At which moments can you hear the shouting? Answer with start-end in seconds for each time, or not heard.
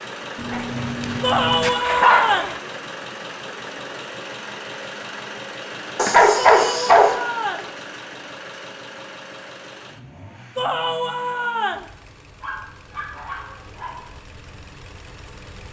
1.2-2.5, 6.5-7.7, 10.6-11.9.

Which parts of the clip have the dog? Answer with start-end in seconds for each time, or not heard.
0.3-2.5, 6.0-7.2, 12.4-14.1.